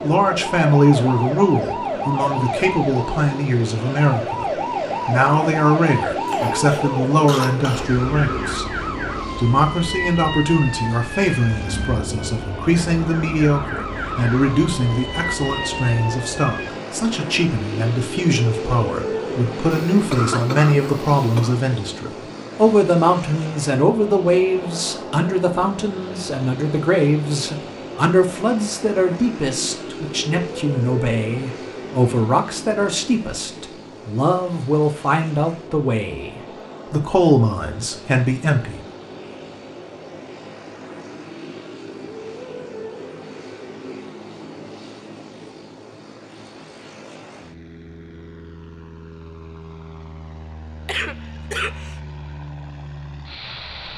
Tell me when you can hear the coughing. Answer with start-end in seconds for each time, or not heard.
6.2-7.8, 19.9-21.6, 50.9-52.0.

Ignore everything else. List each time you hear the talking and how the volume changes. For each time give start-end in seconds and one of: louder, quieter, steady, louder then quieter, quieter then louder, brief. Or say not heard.
0.0-38.8 steady.